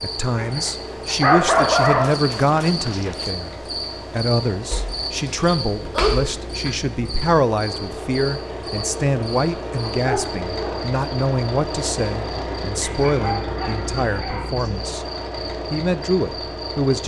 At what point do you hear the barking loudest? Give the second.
1 s.